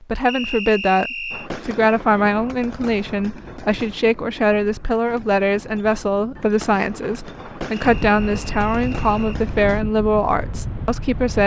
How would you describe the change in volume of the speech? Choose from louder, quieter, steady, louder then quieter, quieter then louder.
steady.